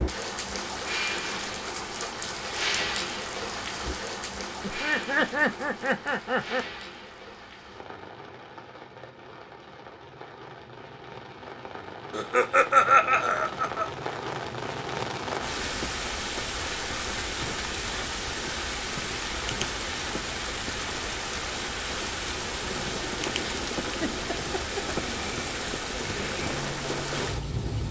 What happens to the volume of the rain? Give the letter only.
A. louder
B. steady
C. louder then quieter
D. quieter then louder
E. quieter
D.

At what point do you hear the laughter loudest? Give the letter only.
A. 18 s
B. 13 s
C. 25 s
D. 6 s
B.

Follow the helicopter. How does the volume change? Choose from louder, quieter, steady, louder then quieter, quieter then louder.
steady.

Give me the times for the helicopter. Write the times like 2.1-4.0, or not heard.
22.4-27.8.